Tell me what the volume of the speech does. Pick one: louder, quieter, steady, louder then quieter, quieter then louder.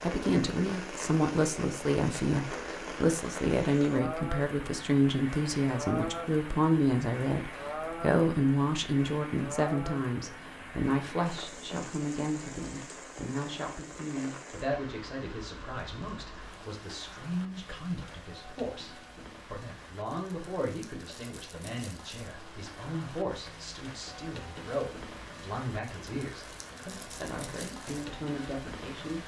quieter.